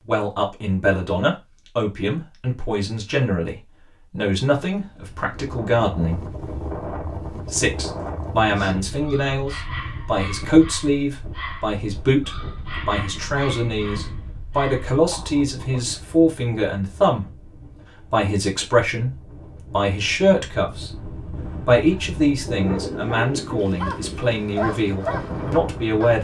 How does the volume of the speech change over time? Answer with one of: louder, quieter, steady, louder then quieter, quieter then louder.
steady.